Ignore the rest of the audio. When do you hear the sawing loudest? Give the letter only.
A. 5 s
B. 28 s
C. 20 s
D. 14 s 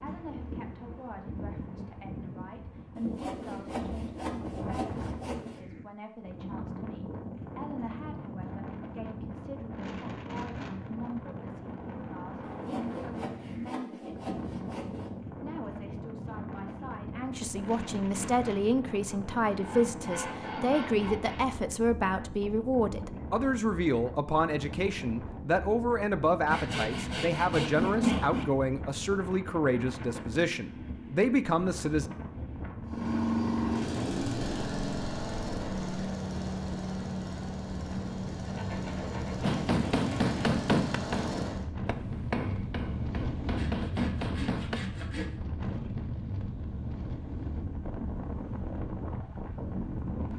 B.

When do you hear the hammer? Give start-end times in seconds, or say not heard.
39.4-44.8.